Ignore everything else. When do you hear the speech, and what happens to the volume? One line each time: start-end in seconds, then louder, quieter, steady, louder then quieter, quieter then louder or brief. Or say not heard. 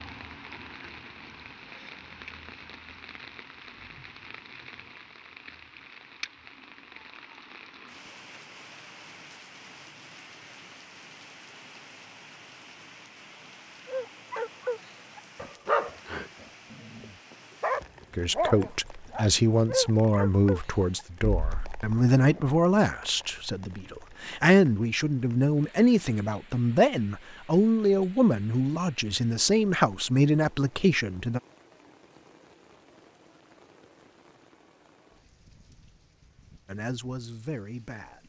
18.1-31.4 steady
36.7-38.2 brief.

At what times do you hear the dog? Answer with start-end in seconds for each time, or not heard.
13.8-22.4.